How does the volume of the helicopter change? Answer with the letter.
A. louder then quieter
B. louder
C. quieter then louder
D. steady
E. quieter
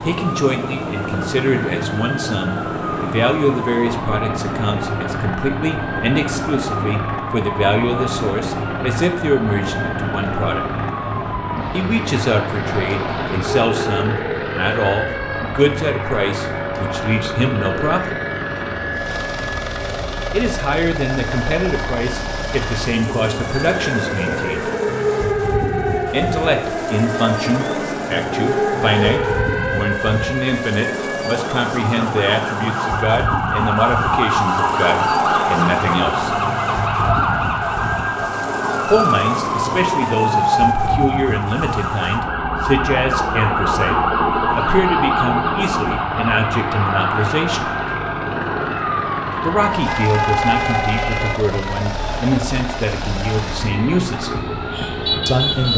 D.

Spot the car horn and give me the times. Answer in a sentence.
The car horn can be heard from 49.7 to 51.5 s.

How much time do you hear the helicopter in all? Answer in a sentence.
The helicopter can be heard for 56 seconds in total.